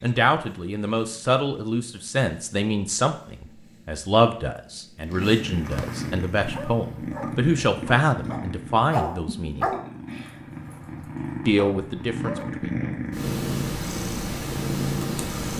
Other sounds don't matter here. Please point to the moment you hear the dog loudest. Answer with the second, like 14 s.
9 s.